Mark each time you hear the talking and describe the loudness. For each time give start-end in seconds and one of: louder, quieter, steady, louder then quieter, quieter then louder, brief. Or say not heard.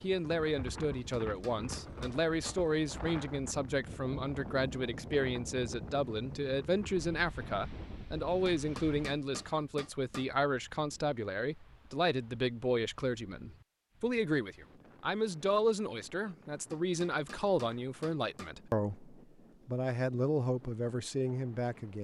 0.0-22.0 steady.